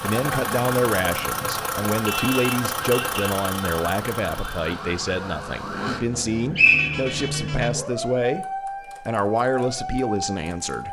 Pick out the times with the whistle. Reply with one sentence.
The whistle can be heard from 6.5 to 7.2 s.